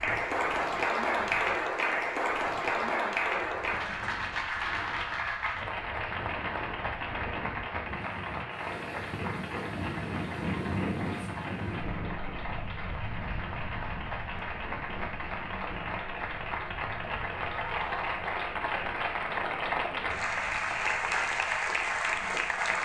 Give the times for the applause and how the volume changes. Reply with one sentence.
You can hear the applause from 0.0 to 22.7 s, getting quieter then louder.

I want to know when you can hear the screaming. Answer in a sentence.
The screaming can be heard from 17.4 to 18.2 s.